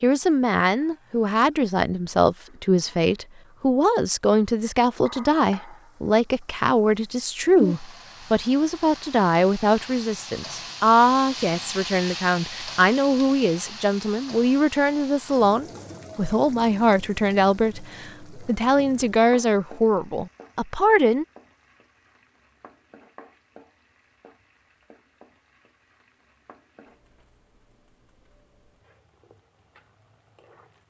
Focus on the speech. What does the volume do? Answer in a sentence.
The volume of the speech stays about the same.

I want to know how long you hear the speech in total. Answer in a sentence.
You can hear the speech for 21 seconds altogether.